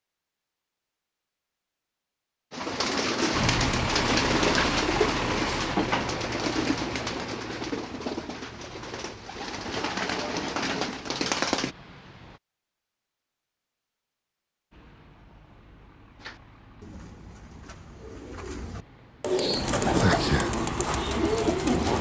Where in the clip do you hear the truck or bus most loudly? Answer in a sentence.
The loudest moment of the truck or bus is at 4 seconds.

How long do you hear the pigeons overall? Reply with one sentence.
The pigeons can be heard for 15 seconds in total.